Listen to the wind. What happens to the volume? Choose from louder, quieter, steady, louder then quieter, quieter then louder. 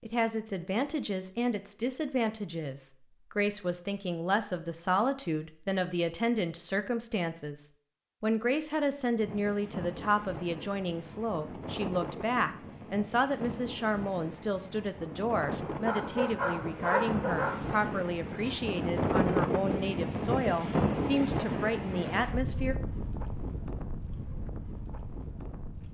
louder then quieter.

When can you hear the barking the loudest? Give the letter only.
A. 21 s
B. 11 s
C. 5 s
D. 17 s
D.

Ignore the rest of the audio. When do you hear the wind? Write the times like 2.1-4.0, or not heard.
9.2-25.8.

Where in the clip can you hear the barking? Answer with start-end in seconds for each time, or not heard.
15.5-17.8.